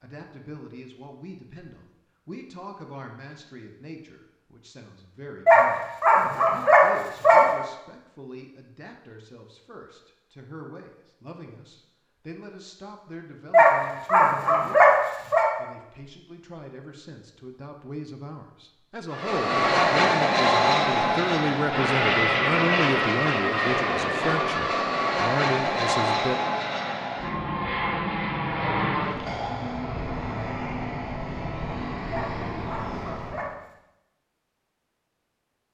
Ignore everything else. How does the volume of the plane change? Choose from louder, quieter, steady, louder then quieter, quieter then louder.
quieter.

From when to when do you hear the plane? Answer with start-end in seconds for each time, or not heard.
19.1-33.5.